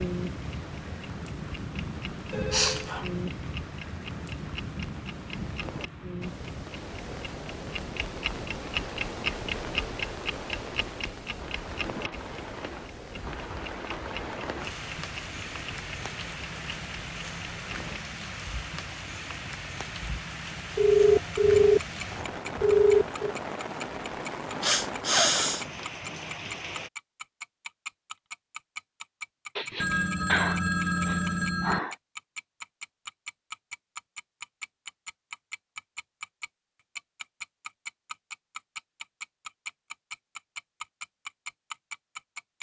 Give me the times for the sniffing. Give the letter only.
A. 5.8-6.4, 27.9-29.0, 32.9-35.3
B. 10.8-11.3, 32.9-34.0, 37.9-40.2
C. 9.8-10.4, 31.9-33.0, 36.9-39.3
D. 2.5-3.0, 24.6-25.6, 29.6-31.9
D.